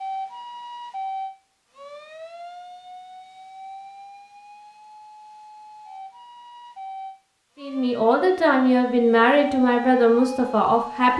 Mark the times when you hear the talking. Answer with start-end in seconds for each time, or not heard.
7.6-11.1.